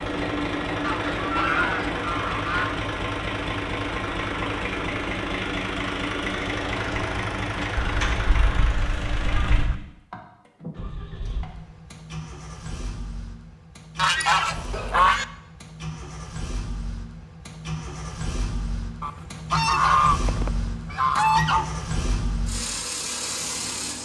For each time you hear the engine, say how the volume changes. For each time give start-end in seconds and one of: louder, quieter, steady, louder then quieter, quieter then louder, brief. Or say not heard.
0.0-23.9 quieter then louder.